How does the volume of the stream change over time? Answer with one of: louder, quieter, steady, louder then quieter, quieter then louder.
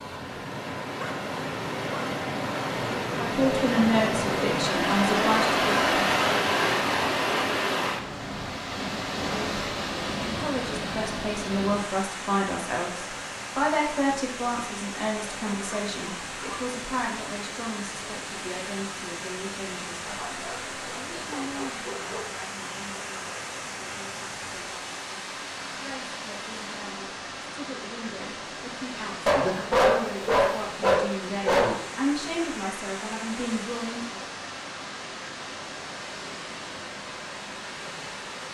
quieter.